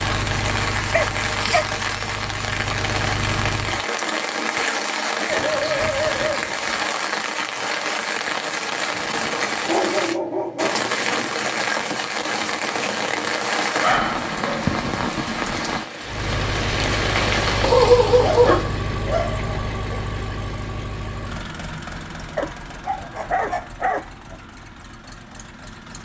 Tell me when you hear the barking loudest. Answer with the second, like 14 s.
18 s.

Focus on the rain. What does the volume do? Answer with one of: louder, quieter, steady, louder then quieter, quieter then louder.
steady.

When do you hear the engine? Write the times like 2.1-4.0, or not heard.
0.0-3.9, 16.0-26.0.